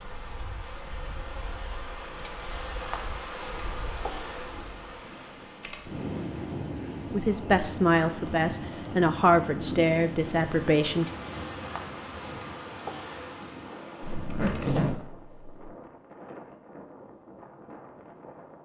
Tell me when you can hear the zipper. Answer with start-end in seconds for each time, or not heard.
14.0-15.7.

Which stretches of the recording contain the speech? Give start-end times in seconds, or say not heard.
7.1-11.1.